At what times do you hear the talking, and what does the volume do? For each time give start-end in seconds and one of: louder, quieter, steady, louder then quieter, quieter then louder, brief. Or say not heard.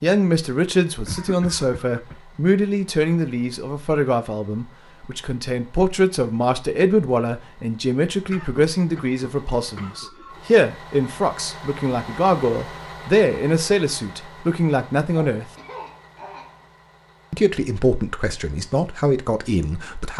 0.0-15.4 steady
17.3-20.1 brief.